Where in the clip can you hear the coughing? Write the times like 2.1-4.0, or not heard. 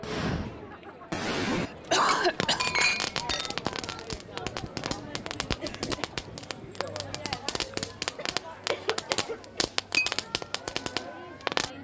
1.5-2.6, 8.2-9.7.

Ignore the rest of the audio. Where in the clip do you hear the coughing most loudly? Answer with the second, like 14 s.
2 s.